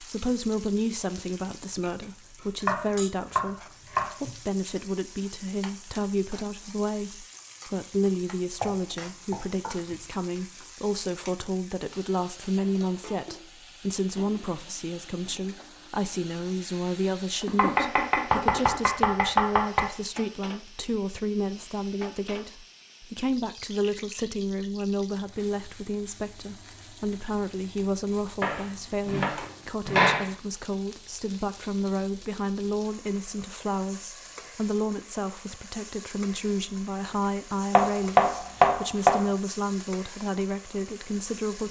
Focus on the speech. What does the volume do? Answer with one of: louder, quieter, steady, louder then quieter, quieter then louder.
steady.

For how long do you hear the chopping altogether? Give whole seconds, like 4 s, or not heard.
9 s.